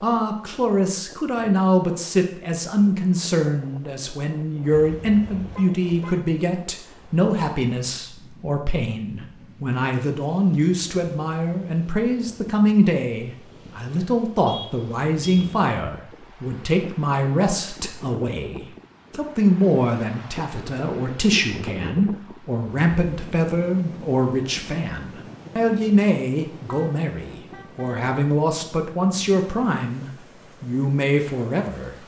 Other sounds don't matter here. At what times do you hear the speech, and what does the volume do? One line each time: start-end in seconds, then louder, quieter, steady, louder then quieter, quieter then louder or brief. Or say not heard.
0.0-31.9 steady.